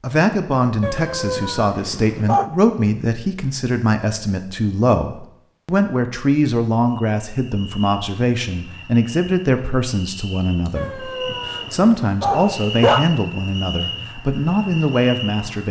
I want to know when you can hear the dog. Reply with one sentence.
The dog can be heard from 0.8 to 2.5 s and from 10.8 to 13.1 s.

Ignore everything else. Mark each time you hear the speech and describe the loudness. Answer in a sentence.
You can hear the speech from 0.0 to 15.6 s, at a steady volume.